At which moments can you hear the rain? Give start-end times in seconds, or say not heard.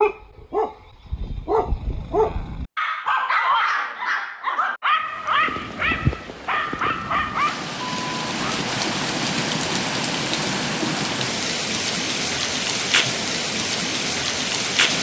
4.9-14.9.